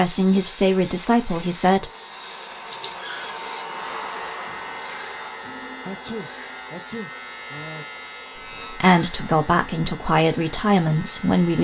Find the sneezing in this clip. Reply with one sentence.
The sneezing can be heard from 2.7 to 3.4 s and from 5.8 to 8.1 s.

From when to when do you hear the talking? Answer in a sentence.
The talking can be heard from 0.0 to 1.9 s and from 8.7 to 11.5 s.